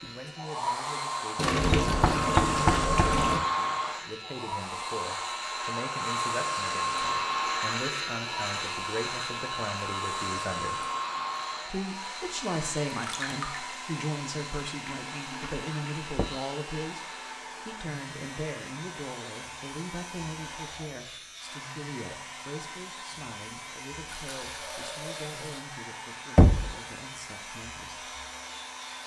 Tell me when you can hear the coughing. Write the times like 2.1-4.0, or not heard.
not heard.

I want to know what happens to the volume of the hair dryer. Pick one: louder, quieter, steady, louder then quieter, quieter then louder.
quieter.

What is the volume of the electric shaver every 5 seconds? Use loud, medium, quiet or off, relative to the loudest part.
medium, loud, medium, medium, medium, medium.